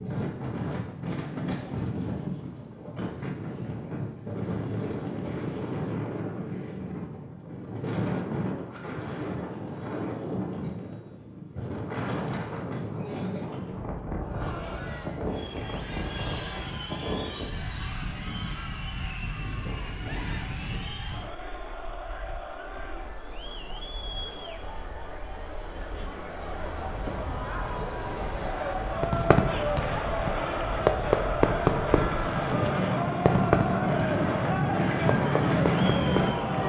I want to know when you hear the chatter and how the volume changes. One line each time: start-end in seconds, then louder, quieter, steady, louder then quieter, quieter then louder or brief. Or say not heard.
14.2-36.6 louder.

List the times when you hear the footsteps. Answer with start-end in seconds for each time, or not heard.
not heard.